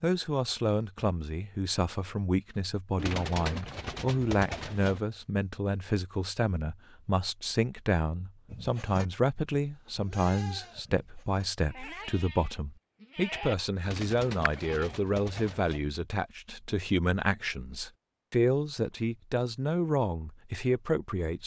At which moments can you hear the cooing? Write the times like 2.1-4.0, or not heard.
3.0-5.0, 13.8-15.8.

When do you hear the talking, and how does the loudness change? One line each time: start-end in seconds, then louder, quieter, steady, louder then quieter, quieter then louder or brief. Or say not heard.
0.0-21.4 steady.